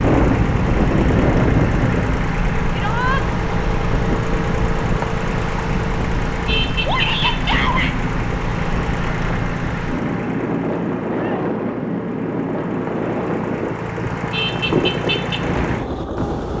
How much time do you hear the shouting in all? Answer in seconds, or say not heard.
2 s.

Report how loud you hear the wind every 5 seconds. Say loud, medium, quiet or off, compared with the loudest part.
loud, medium, loud, medium.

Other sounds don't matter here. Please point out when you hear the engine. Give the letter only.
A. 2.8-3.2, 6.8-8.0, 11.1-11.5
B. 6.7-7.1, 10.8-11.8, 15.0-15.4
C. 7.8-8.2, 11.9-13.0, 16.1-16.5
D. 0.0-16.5
D.